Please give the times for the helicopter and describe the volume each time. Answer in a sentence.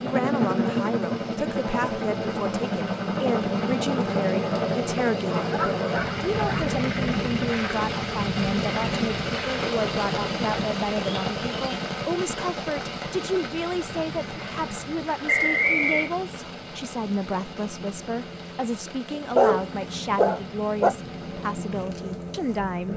The helicopter can be heard from 0.0 to 22.9 s, getting quieter.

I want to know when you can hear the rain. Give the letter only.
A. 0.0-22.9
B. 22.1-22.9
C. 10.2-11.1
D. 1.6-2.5
A.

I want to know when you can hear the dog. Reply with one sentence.
The dog can be heard from 5.2 to 6.8 s and from 19.1 to 20.9 s.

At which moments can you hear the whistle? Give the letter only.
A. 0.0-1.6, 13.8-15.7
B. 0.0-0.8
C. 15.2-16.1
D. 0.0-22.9
C.